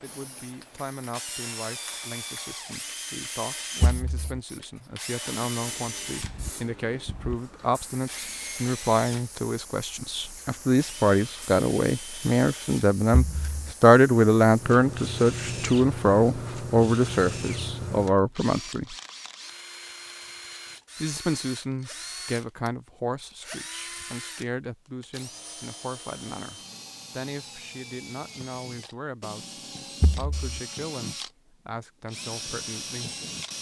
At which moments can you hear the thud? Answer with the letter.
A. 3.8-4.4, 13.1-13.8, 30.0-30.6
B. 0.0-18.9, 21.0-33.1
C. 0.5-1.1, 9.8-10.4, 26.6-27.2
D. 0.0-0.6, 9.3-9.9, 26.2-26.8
A.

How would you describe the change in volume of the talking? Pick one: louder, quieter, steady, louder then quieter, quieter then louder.
louder then quieter.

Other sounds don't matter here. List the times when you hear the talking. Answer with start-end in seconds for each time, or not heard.
0.0-18.9, 21.0-33.1.